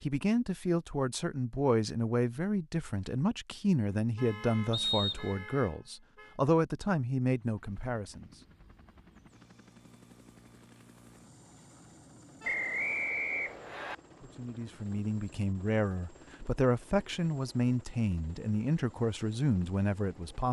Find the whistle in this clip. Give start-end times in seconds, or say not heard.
4.7-5.3, 12.4-13.9.